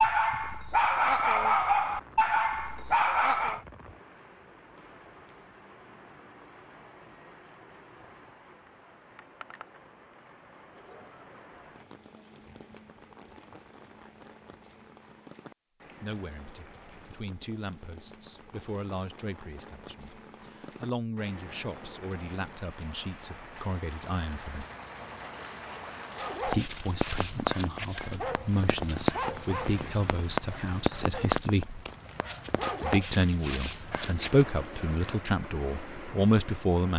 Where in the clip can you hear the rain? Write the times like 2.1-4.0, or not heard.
0.0-36.9.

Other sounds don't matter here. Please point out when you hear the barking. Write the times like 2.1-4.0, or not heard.
0.0-3.6, 26.1-34.5.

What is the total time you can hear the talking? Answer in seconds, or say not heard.
18 s.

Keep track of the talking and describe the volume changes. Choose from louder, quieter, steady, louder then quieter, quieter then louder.
louder.